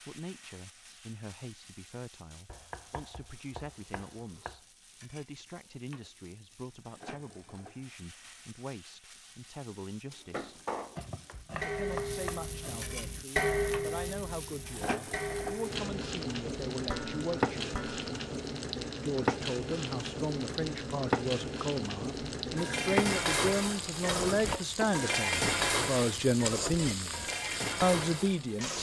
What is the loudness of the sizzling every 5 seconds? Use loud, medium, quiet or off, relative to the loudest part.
quiet, quiet, medium, loud, loud, loud.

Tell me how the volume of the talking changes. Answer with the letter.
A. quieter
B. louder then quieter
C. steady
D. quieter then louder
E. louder
E.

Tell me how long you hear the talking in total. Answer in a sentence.
You can hear the talking for 26 seconds altogether.